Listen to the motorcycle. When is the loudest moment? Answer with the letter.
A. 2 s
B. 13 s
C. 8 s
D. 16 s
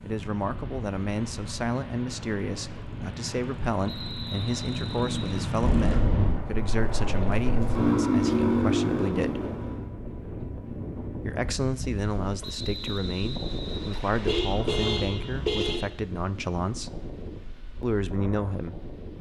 C.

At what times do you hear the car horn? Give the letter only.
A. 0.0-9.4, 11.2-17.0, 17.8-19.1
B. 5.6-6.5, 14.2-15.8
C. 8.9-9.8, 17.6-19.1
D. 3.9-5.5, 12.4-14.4
B.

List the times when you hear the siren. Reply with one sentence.
The siren can't be heard in this clip.